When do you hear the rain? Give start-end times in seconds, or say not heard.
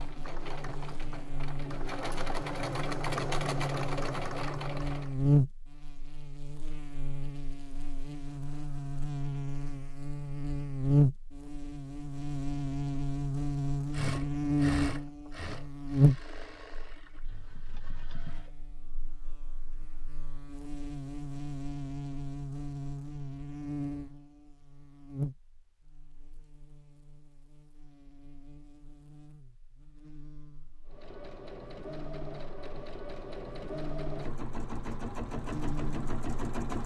not heard.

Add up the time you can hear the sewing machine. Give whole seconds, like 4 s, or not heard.
16 s.